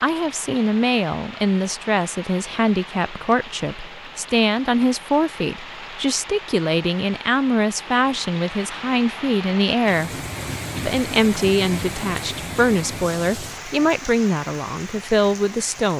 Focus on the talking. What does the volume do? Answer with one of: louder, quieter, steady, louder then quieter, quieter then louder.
steady.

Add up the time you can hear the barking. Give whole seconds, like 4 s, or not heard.
not heard.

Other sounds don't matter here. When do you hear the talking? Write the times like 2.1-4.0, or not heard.
0.0-10.1, 10.8-15.9.